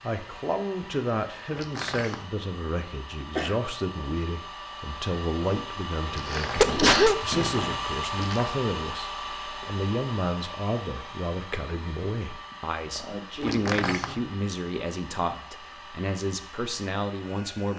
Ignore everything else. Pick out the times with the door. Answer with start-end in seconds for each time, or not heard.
1.5-2.3, 6.0-8.5, 13.4-14.2.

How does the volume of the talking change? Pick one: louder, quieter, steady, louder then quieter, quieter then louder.
steady.